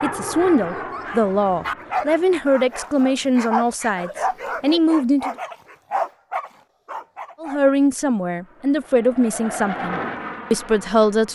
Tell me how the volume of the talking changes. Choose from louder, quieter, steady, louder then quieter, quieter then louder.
steady.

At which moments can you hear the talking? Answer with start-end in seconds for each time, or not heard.
0.0-5.3, 7.4-11.2.